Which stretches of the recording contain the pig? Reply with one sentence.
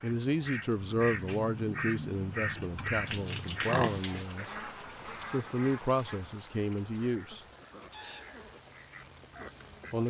You can hear the pig from 3.0 to 4.3 s.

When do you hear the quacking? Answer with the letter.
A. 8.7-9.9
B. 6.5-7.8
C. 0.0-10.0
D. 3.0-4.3
C.